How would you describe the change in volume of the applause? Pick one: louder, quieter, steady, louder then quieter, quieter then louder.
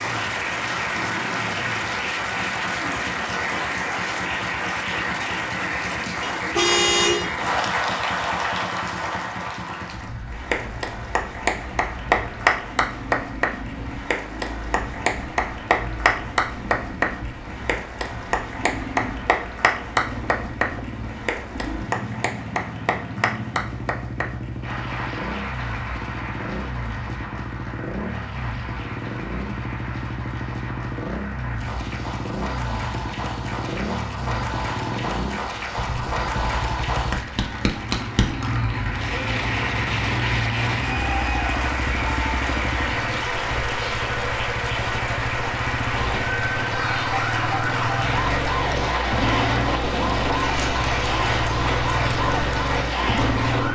quieter then louder.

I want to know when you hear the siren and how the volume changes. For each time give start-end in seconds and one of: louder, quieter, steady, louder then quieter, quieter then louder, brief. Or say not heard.
45.9-53.7 steady.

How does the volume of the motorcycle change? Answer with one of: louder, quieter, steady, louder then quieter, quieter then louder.
louder.